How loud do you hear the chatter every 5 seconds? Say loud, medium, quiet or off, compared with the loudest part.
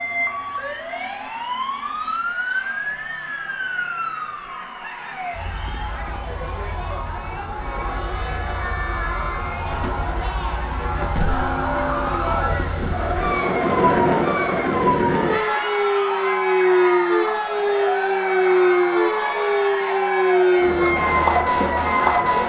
quiet, medium, loud, loud, loud.